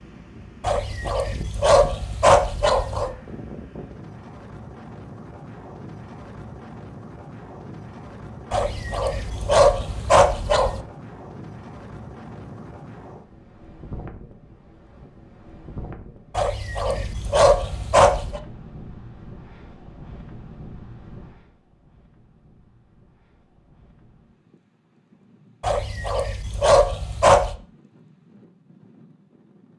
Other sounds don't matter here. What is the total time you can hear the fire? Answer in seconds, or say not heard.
not heard.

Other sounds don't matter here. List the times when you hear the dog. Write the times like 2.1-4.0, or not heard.
0.6-3.1, 8.5-10.8, 16.4-18.4, 25.6-27.6.